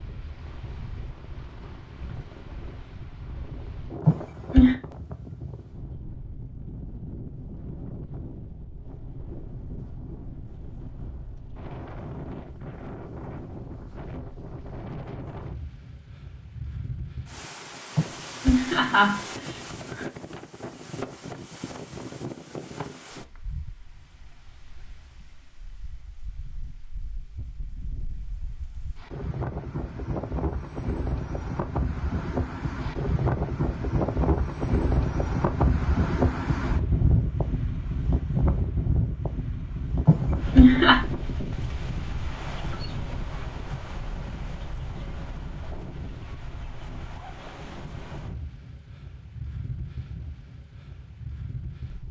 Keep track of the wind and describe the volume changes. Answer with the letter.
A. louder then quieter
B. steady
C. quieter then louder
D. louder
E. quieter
A.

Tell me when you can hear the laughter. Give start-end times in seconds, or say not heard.
4.0-4.8, 17.9-20.1, 40.0-41.0.